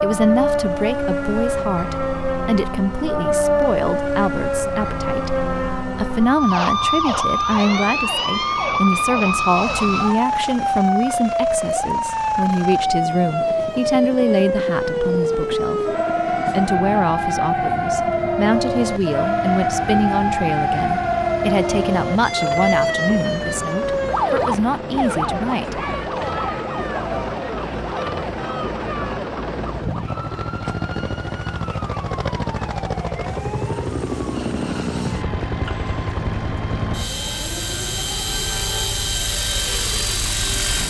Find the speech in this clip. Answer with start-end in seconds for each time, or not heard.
0.0-25.9.